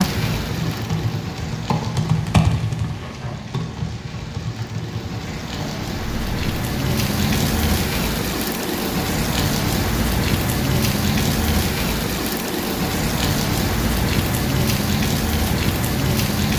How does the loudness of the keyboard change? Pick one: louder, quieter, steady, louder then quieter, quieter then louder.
louder then quieter.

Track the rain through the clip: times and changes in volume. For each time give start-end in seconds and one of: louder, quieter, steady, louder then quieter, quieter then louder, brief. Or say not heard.
0.0-16.5 louder.